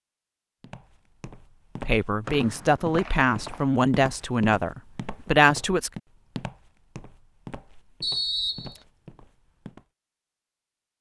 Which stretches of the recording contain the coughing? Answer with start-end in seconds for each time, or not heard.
not heard.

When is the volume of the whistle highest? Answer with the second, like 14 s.
8 s.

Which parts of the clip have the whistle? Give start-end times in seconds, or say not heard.
2.2-3.6, 8.0-8.8.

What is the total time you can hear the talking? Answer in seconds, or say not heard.
4 s.